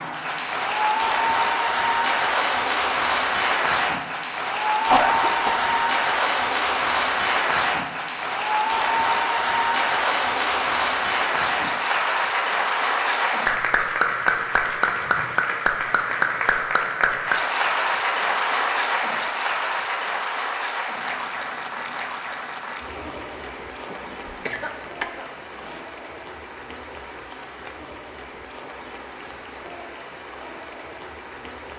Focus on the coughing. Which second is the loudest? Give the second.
5 s.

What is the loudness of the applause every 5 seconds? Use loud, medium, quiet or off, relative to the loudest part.
loud, loud, loud, loud, medium, quiet, quiet.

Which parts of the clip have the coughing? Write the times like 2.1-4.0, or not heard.
4.9-5.8, 23.9-25.8.